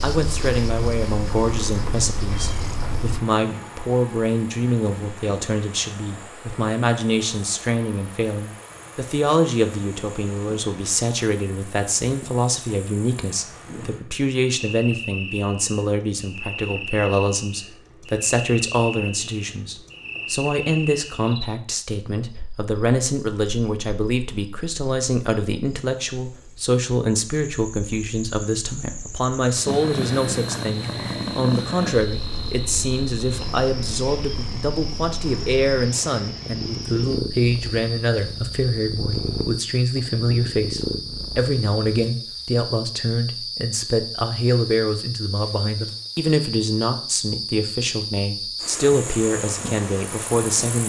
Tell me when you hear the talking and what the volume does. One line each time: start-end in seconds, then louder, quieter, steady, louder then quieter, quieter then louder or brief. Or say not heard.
0.0-50.8 steady.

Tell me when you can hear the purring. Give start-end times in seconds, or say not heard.
0.0-3.2, 29.6-42.1.